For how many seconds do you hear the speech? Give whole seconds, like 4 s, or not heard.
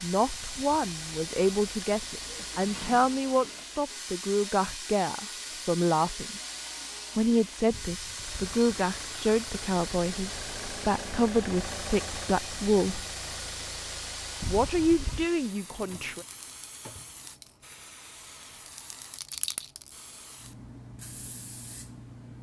14 s.